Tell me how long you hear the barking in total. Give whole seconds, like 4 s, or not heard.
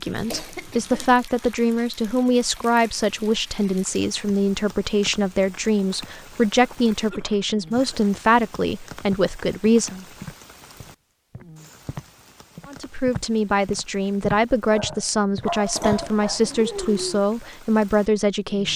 2 s.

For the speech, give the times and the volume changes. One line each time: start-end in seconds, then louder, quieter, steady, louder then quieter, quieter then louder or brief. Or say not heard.
0.0-10.1 steady
12.7-18.7 steady.